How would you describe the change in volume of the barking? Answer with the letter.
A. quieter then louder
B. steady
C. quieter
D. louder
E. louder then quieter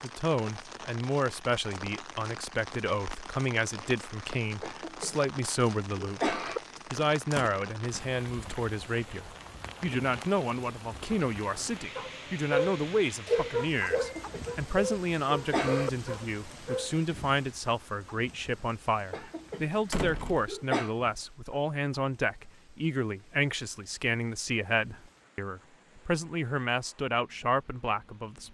C.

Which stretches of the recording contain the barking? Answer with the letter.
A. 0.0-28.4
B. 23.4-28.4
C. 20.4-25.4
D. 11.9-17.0
D.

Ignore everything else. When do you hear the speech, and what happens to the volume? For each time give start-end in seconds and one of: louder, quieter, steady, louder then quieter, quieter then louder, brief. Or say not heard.
0.0-28.4 steady.